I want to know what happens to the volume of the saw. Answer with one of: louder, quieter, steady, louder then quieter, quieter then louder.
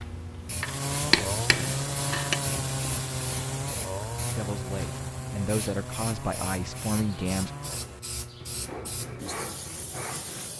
quieter.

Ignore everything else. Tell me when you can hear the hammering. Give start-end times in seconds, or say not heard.
0.6-2.4.